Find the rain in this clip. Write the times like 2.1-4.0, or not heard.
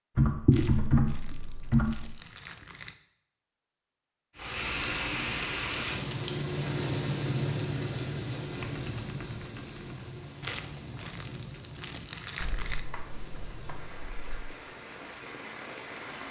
4.3-16.2.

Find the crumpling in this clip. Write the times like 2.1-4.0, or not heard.
0.5-3.0, 10.4-12.8.